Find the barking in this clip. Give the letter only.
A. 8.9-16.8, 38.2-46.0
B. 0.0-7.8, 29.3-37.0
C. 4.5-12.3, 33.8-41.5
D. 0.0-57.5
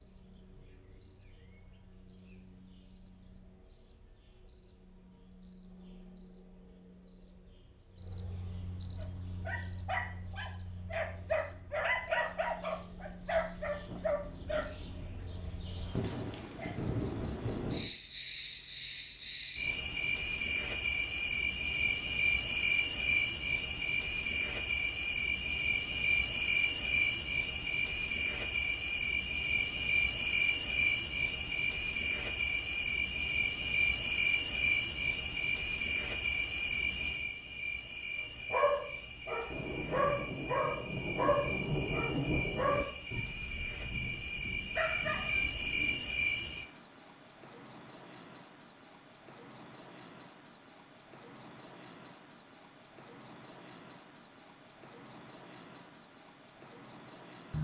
A.